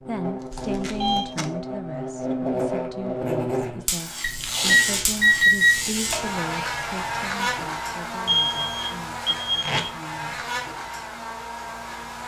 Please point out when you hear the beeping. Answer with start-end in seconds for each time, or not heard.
0.5-1.2, 4.2-6.2, 8.2-9.8.